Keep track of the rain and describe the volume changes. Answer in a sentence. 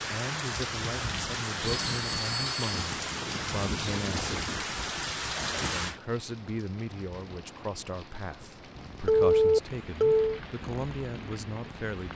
The loudness of the rain goes down.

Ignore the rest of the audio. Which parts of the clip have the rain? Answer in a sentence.
You can hear the rain from 0.0 to 12.1 s.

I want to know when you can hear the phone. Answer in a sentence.
You can hear the phone from 1.6 to 2.9 s and from 9.1 to 10.4 s.